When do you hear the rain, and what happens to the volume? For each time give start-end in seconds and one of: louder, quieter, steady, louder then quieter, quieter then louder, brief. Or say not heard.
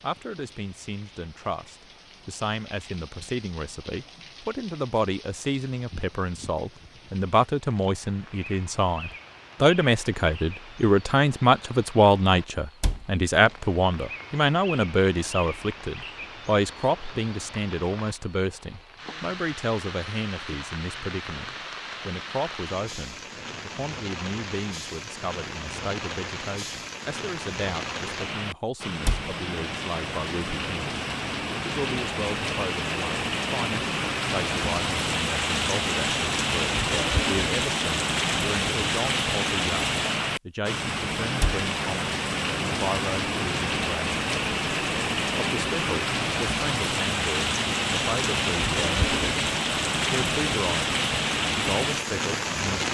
0.0-52.9 louder.